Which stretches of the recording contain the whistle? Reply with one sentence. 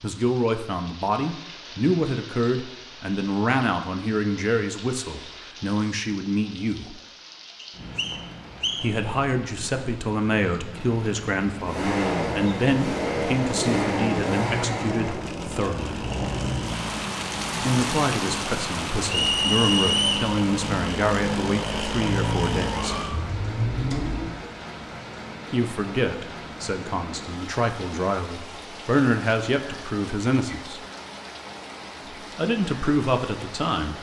The whistle can be heard from 7.6 to 8.9 s and from 19.1 to 20.3 s.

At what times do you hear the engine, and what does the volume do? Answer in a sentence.
The engine can be heard from 11.6 to 24.4 s, getting quieter then louder.